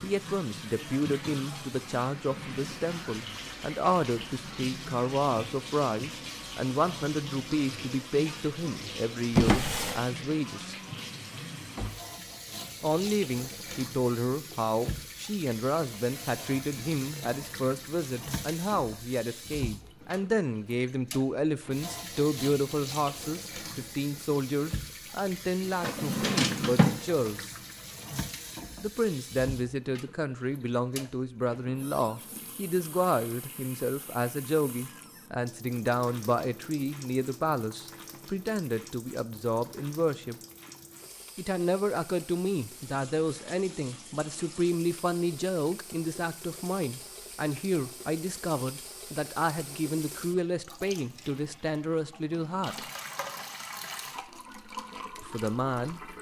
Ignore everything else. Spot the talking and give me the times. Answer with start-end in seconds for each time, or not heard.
0.0-10.8, 12.8-27.6, 28.8-40.4, 41.4-52.8, 55.2-56.0.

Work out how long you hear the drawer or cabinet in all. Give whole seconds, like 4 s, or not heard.
3 s.